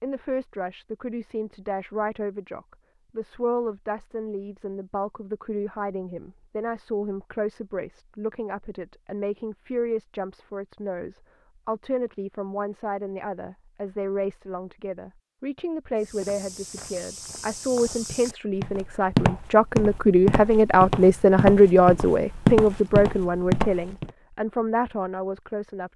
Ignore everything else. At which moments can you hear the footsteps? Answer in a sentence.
The footsteps can be heard from 15.9 to 24.1 s.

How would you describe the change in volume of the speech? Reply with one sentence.
The volume of the speech goes up.